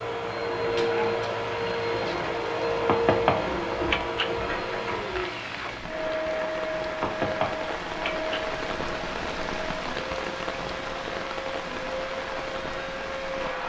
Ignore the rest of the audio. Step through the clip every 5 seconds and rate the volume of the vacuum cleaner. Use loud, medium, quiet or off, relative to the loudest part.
loud, medium, medium.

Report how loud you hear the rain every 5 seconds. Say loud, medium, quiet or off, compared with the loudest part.
medium, loud, loud.